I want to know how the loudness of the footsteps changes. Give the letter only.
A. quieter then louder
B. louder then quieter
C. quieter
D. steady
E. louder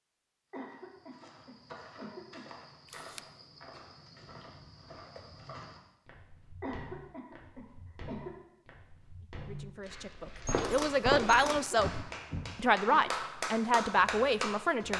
E.